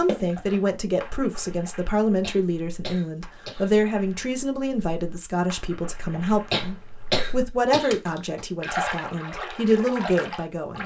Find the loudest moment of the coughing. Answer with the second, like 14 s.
7 s.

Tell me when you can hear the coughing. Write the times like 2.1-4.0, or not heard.
2.2-3.7, 6.5-8.4.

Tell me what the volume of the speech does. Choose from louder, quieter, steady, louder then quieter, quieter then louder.
steady.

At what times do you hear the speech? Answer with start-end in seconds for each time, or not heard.
0.0-10.8.